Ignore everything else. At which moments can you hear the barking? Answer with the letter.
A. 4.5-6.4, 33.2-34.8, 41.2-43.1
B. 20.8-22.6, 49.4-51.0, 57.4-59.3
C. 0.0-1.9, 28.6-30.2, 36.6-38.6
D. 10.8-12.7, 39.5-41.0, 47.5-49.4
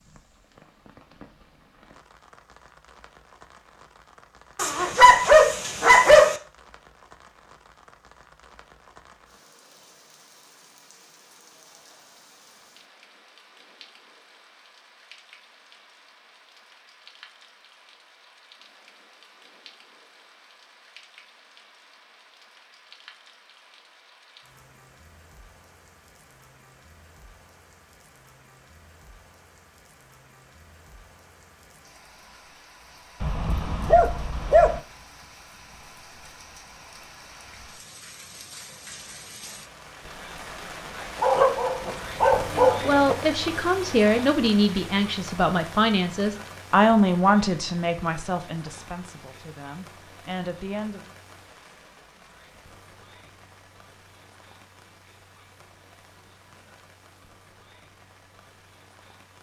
A.